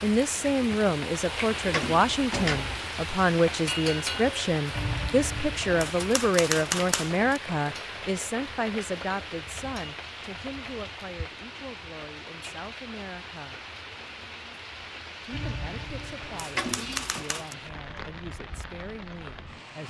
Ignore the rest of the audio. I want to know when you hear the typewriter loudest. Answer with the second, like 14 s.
7 s.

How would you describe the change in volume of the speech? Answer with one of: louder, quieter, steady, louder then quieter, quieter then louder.
quieter.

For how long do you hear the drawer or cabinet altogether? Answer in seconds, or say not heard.
2 s.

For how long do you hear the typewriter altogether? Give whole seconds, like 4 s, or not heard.
5 s.